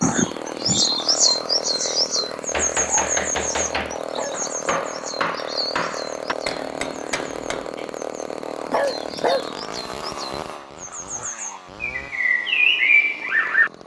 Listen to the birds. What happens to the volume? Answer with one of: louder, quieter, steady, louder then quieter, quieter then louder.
quieter then louder.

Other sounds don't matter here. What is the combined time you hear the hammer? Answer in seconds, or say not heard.
5 s.